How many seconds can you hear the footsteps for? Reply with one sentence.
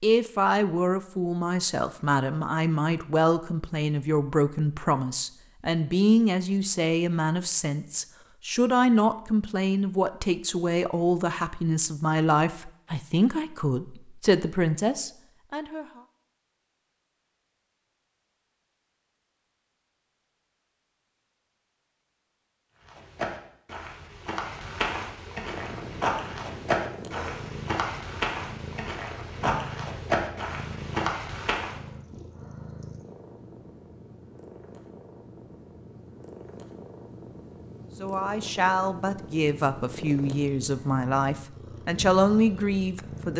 The footsteps can be heard for 9 seconds in total.